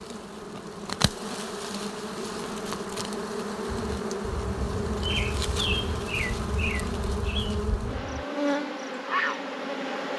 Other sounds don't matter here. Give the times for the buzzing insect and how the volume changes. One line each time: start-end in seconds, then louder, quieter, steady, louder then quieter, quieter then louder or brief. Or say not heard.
0.0-10.1 steady.